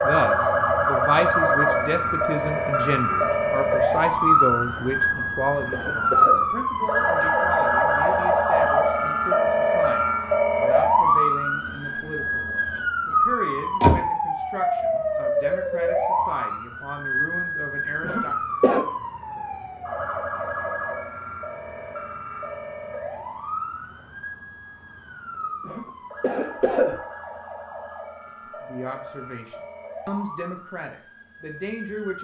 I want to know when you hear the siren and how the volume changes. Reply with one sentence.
The siren can be heard from 0.0 to 32.1 s, getting quieter.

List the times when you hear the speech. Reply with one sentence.
The speech can be heard from 0.0 to 18.4 s and from 28.6 to 32.1 s.